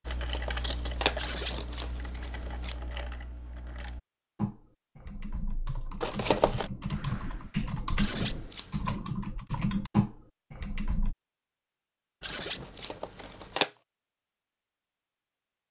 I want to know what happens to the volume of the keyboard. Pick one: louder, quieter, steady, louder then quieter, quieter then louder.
louder.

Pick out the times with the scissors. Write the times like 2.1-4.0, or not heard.
1.1-2.8, 8.0-8.9, 12.2-13.6.